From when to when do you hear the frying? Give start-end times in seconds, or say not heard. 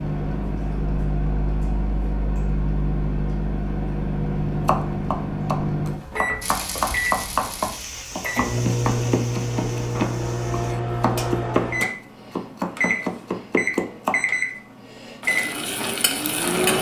6.4-10.8, 15.2-16.7.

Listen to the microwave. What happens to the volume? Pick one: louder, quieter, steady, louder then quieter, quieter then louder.
steady.